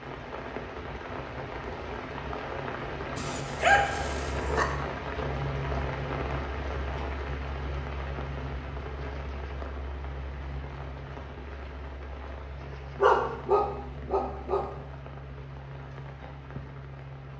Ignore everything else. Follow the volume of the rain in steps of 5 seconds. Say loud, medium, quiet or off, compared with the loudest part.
loud, loud, medium, medium.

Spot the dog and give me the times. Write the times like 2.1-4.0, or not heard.
3.1-4.7, 13.0-14.7.